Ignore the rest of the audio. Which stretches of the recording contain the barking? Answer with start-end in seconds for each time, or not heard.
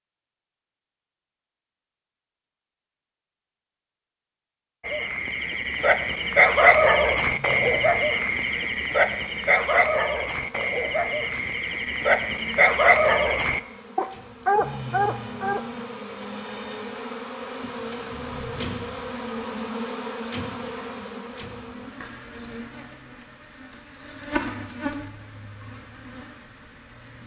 4.8-15.7.